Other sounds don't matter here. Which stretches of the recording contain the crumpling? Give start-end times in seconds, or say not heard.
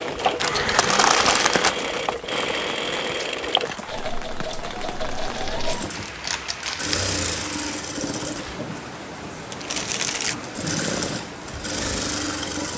0.3-1.8, 5.1-7.0, 9.5-10.3.